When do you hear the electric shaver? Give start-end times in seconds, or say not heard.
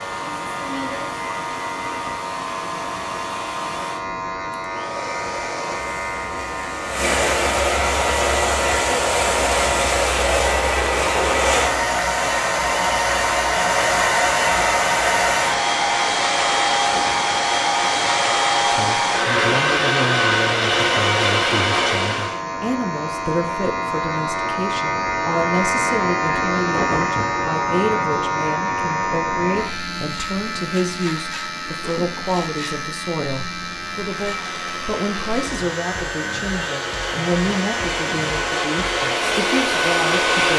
0.0-40.4.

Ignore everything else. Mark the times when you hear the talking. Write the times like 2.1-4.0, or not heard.
18.7-40.5.